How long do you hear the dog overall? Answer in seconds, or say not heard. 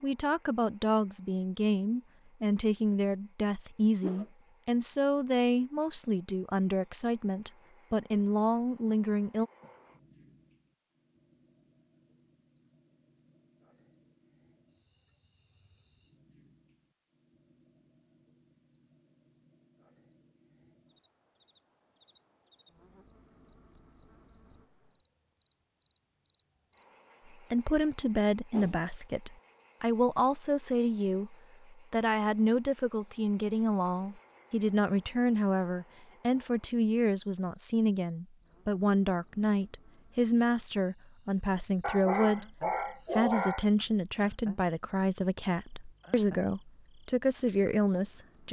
2 s.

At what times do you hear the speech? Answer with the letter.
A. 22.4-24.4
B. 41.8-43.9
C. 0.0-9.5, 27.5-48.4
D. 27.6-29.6
C.